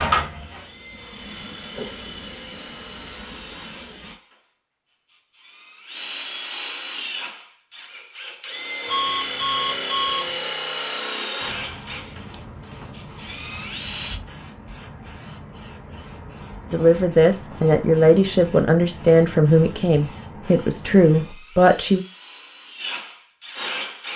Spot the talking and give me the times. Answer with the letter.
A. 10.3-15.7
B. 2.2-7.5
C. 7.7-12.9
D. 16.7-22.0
D.